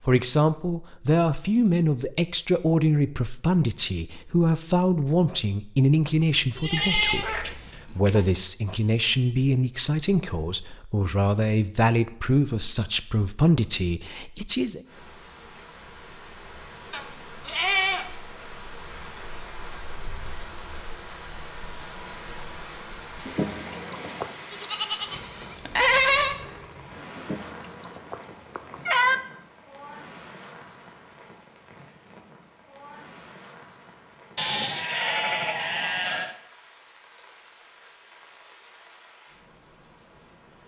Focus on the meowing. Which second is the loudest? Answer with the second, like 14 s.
29 s.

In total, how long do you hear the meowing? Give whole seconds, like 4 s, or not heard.
4 s.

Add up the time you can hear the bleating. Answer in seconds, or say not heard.
7 s.